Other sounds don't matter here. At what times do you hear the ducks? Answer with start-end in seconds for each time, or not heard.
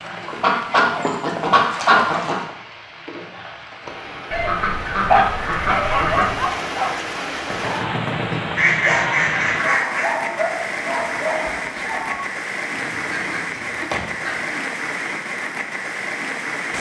0.2-2.4, 4.3-6.5, 8.6-10.3, 12.8-14.6.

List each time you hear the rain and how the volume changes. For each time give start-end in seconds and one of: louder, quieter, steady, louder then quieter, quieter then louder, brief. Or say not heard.
0.0-16.7 louder.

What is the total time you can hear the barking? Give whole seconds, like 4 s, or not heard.
7 s.